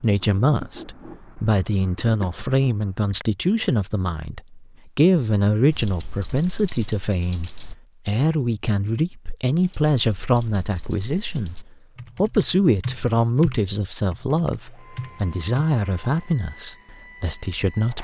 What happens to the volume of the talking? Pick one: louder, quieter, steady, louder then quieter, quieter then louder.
steady.